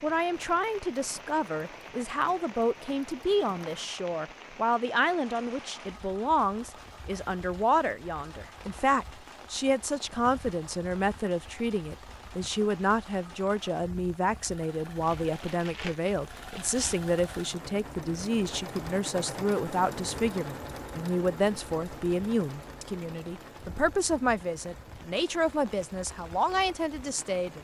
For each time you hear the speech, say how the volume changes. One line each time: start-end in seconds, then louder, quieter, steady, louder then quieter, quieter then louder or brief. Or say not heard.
0.0-27.5 steady.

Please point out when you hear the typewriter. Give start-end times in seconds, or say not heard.
not heard.